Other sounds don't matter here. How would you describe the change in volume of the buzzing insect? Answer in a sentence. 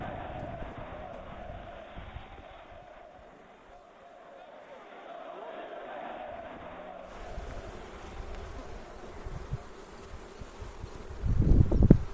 The loudness of the buzzing insect goes down, then up.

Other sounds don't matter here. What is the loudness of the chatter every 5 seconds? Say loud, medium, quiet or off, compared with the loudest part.
loud, loud, off.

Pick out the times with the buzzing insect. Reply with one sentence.
You can hear the buzzing insect from 0.0 to 12.0 s.